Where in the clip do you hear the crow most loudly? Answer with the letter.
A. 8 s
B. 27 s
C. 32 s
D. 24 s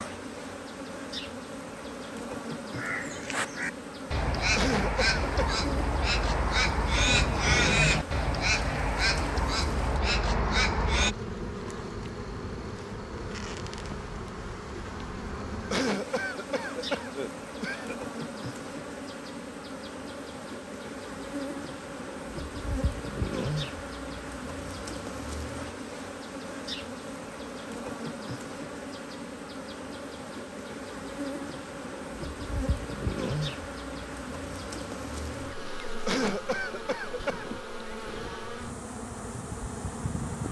A.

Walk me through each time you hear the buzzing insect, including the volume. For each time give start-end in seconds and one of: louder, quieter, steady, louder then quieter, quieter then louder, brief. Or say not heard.
0.0-40.4 steady.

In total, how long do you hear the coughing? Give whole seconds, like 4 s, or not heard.
5 s.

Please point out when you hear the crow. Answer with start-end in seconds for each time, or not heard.
2.7-11.2.